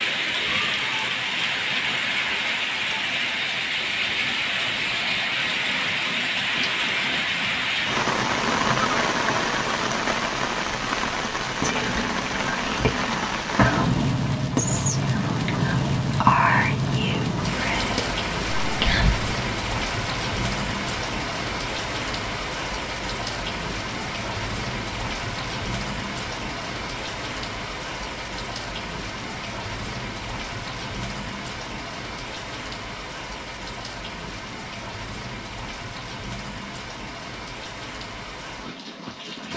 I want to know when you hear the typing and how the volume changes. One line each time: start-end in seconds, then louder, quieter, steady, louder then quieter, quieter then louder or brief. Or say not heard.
not heard.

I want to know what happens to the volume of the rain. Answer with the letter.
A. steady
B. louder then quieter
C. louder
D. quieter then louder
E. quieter
E.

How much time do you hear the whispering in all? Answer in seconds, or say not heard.
8 s.